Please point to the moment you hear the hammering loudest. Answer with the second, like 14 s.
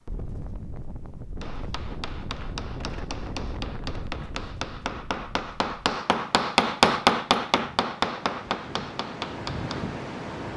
7 s.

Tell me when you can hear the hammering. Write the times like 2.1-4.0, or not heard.
1.4-9.8.